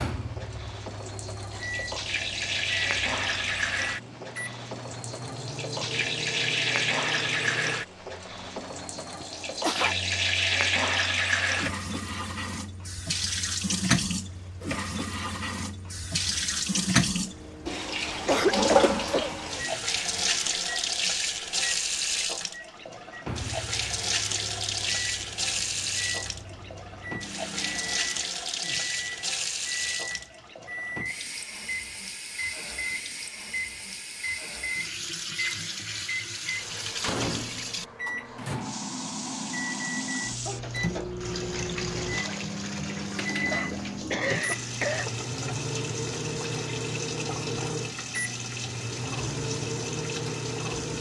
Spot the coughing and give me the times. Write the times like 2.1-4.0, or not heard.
8.9-9.9, 18.1-19.3, 43.5-45.1.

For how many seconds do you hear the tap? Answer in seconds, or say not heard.
51 s.